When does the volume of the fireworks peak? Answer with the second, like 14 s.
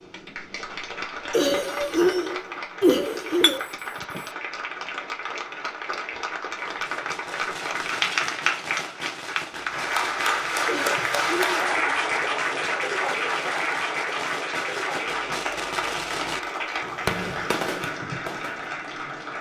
17 s.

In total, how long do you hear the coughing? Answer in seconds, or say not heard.
3 s.